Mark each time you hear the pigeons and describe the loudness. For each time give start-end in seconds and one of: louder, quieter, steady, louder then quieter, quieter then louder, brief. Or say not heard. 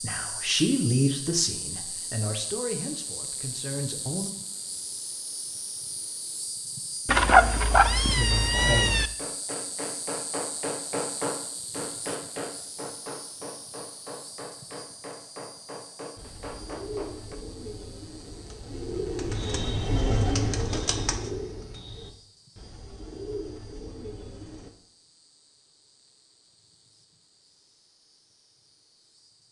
16.1-24.7 louder then quieter.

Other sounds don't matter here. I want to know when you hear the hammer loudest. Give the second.
11 s.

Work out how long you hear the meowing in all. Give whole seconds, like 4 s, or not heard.
2 s.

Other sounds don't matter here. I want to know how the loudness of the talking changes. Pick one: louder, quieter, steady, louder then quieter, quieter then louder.
quieter.